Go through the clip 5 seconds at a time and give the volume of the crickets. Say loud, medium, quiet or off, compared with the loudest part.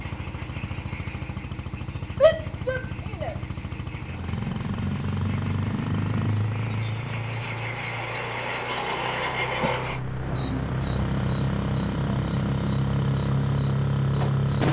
medium, loud, loud.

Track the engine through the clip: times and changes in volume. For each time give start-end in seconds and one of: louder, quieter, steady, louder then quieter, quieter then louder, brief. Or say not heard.
0.0-14.6 louder.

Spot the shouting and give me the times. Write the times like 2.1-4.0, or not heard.
2.2-3.4.